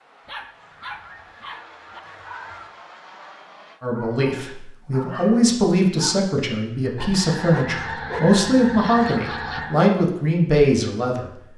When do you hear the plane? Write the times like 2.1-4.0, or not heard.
0.0-3.8.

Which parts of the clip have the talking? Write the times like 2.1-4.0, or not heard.
3.8-11.3.